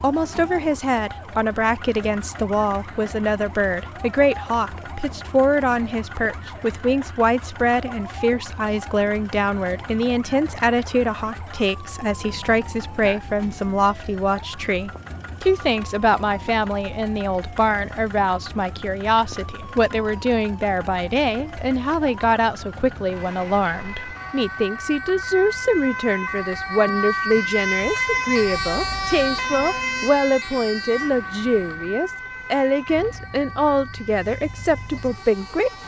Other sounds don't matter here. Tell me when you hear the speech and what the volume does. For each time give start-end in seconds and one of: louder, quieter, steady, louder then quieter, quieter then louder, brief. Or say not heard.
0.0-35.7 steady.